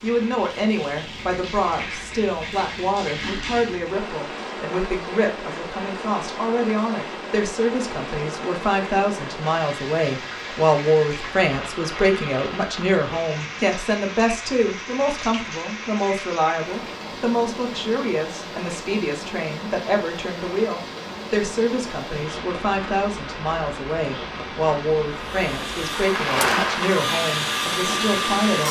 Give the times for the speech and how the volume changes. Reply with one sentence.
The speech can be heard from 0.0 to 28.6 s, at a steady volume.